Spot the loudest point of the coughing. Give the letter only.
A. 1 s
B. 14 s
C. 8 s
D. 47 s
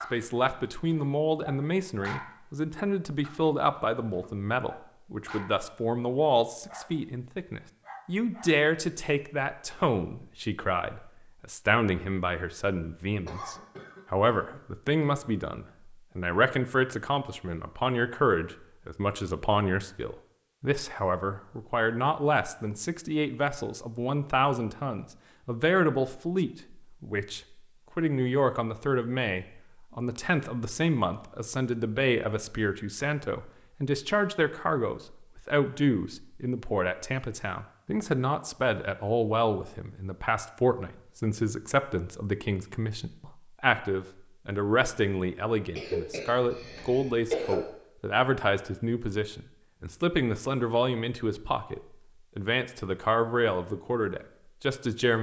D.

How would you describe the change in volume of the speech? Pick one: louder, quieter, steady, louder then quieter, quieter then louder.
steady.